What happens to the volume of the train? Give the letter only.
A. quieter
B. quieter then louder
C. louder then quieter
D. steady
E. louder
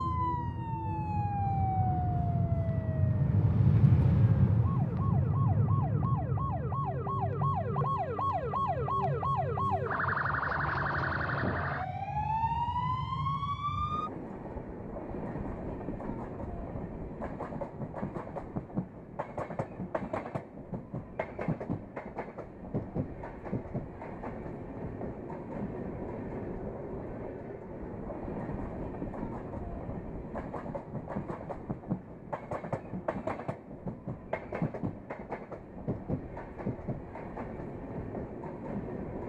A.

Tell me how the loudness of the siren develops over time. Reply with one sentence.
The loudness of the siren goes down, then up.